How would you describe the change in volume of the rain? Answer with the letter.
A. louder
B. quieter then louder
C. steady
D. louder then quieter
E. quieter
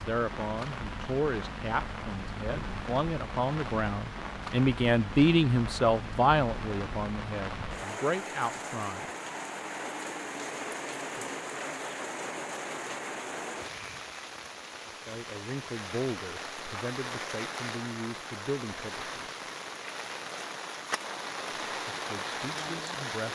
C.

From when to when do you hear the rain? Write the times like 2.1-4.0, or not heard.
0.0-23.2.